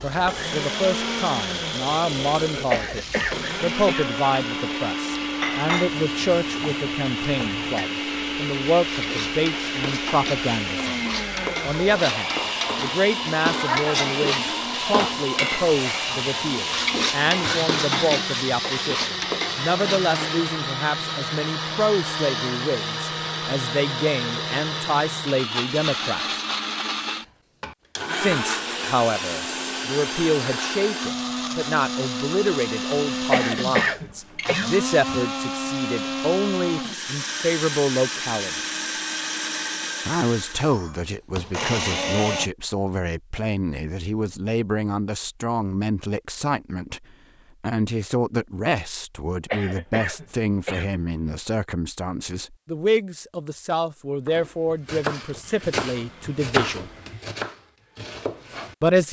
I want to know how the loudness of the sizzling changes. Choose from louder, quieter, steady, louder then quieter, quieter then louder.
louder.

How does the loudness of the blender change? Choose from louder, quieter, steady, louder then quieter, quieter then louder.
steady.